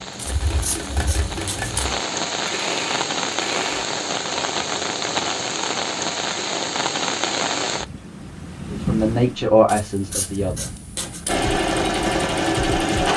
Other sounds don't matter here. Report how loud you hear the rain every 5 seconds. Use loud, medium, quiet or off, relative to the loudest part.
loud, loud, quiet.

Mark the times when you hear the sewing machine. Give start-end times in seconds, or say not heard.
0.0-3.9, 11.2-13.1.